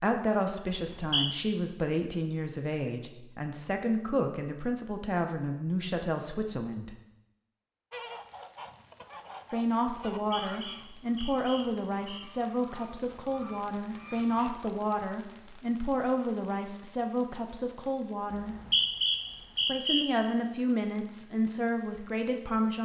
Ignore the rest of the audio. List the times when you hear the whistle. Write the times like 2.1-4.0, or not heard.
0.7-1.3, 10.2-12.2, 18.3-20.1.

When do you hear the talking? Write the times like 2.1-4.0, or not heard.
0.0-7.0, 9.5-18.6, 19.6-22.8.